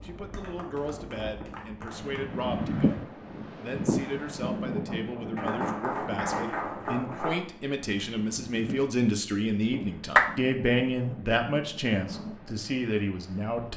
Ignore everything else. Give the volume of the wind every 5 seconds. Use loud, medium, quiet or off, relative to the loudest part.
loud, medium, medium.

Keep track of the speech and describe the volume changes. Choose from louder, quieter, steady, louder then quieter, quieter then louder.
louder.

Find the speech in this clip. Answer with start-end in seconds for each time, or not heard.
0.0-13.7.